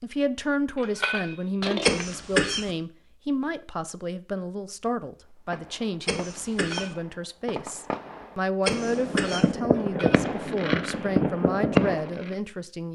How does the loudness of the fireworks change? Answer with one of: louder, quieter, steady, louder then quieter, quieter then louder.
louder.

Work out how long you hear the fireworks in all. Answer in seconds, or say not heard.
7 s.